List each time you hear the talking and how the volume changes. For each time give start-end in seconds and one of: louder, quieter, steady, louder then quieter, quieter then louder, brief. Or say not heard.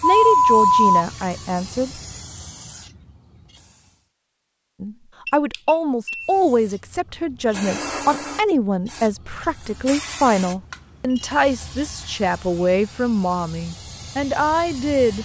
0.0-2.0 brief
4.8-15.2 steady.